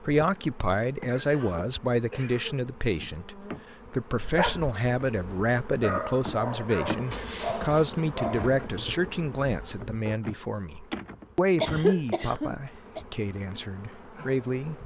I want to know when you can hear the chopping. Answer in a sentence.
The chopping can't be heard in this clip.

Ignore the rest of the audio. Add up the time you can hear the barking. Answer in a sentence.
You can hear the barking for 6 seconds altogether.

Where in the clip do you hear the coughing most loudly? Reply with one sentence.
The loudest moment of the coughing is at 12 seconds.